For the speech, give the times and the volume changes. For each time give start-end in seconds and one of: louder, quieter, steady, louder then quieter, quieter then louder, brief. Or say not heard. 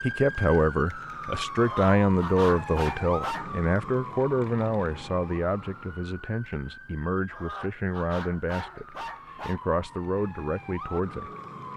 0.0-11.3 quieter.